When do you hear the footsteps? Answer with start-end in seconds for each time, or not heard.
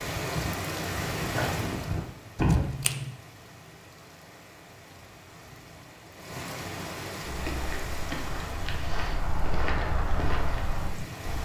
0.0-2.6, 7.2-11.4.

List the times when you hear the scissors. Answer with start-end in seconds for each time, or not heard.
2.4-3.1.